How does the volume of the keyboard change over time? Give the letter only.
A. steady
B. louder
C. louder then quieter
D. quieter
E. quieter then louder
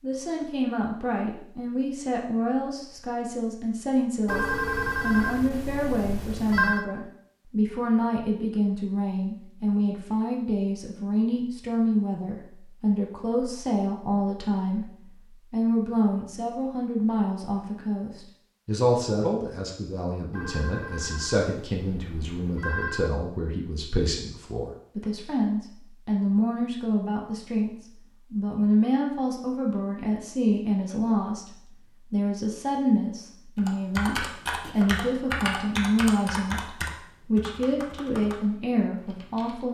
D.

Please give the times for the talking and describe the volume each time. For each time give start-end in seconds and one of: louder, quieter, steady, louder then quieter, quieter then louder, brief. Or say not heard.
0.0-39.6 steady.